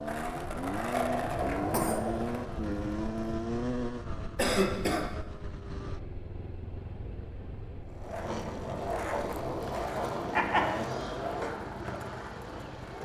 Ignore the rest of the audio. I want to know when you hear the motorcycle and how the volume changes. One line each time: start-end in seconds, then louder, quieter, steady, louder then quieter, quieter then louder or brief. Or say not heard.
0.0-13.0 quieter.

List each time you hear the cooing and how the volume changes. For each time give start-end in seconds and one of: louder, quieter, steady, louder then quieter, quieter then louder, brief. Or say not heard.
not heard.